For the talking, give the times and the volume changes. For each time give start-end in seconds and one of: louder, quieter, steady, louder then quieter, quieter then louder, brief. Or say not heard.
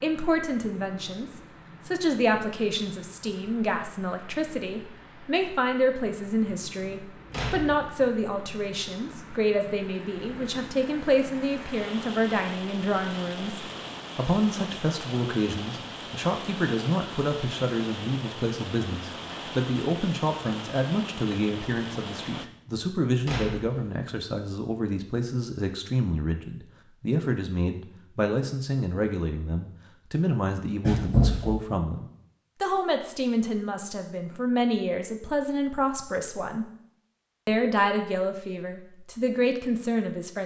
0.0-36.6 steady
37.5-40.4 brief.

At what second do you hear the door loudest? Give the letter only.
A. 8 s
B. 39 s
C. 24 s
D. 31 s
D.